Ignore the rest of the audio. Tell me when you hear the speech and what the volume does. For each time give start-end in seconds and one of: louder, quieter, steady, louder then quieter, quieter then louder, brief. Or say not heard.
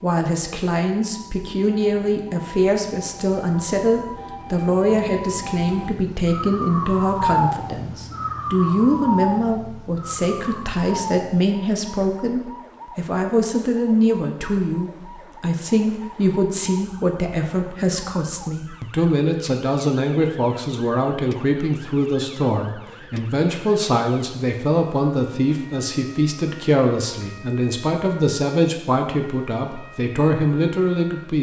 0.0-31.3 steady.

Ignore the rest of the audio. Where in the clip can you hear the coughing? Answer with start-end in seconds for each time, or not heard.
not heard.